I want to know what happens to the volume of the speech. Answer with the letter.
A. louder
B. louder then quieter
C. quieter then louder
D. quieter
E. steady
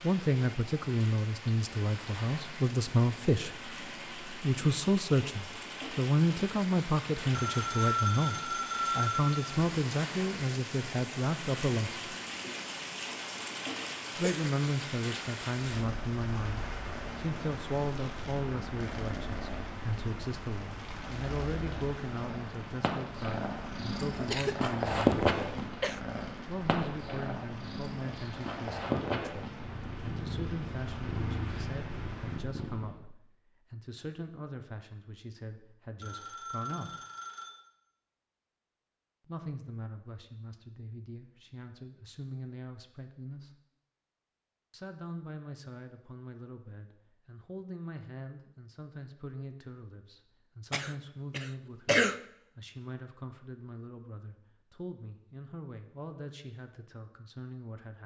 D.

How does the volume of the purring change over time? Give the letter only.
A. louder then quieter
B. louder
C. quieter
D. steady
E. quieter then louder
A.